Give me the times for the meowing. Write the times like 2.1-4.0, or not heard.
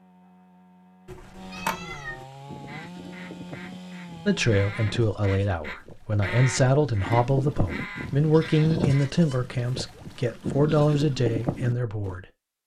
1.1-2.2.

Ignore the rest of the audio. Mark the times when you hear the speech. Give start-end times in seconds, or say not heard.
4.2-12.6.